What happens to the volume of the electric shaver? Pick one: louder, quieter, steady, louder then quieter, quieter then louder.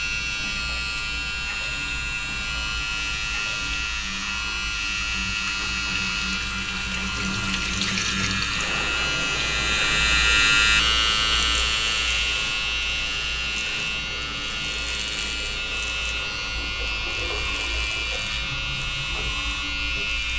louder then quieter.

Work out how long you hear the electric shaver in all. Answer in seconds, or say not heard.
20 s.